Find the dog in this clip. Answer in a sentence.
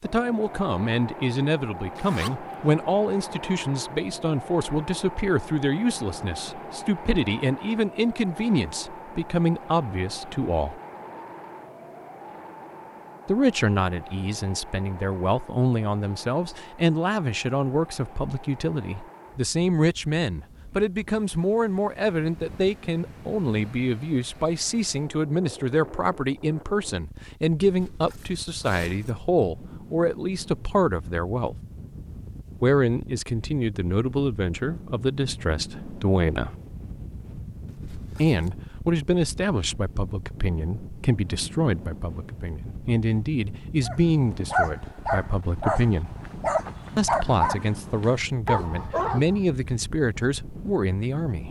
The dog can be heard from 43.9 to 49.4 s.